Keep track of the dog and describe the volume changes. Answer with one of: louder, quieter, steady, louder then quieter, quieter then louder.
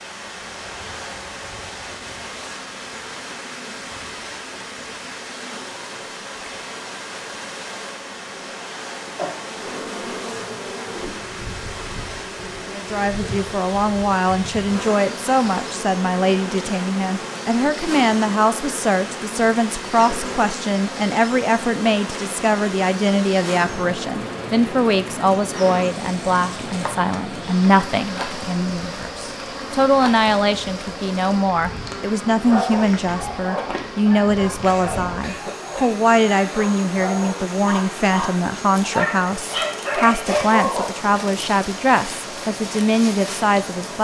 louder.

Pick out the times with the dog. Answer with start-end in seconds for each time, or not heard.
32.5-40.9.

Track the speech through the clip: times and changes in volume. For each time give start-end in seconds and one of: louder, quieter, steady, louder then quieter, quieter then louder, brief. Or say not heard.
12.7-43.9 steady.